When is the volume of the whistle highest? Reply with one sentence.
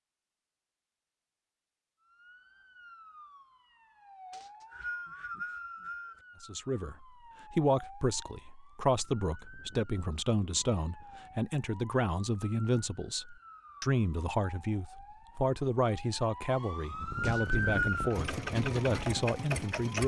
The volume of the whistle peaks at 18 seconds.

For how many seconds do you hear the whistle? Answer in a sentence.
The whistle can be heard for 3 seconds in total.